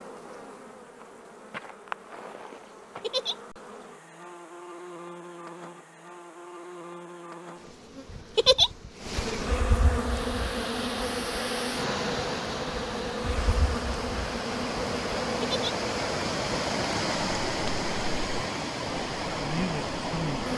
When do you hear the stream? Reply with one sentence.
The stream can be heard from 9.9 to 20.5 s.